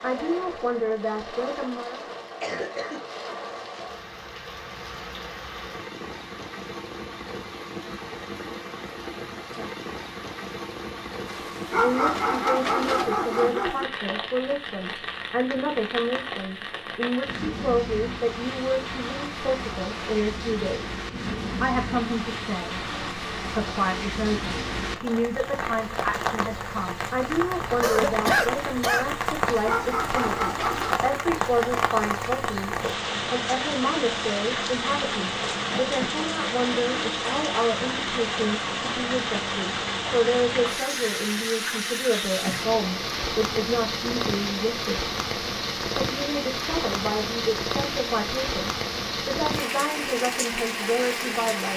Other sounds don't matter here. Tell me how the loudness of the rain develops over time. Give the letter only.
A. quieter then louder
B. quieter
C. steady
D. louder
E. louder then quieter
D.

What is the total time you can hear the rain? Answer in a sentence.
You can hear the rain for 52 seconds altogether.